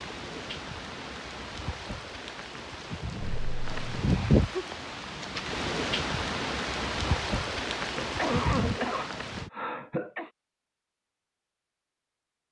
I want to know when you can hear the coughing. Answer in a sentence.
You can hear the coughing from 3.2 to 4.1 s and from 8.0 to 10.3 s.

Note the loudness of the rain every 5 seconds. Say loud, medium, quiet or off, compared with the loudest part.
loud, loud, off.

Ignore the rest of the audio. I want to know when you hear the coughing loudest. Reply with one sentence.
The loudest moment of the coughing is at 8 seconds.